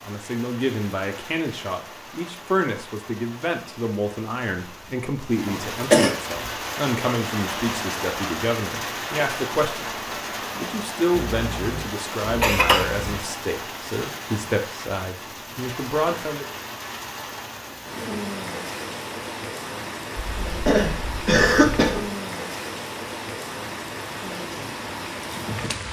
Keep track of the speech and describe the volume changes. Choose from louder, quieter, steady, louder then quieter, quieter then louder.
steady.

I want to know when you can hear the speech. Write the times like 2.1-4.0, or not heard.
0.0-16.4.